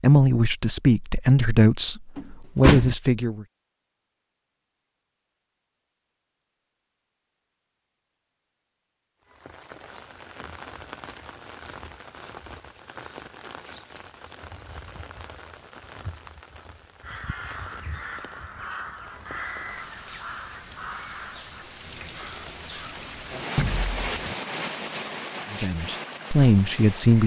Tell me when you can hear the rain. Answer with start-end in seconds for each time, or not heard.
9.2-27.2.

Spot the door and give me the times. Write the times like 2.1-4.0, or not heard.
2.1-3.0, 23.6-24.4.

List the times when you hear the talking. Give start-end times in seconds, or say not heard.
0.0-3.5, 25.5-27.2.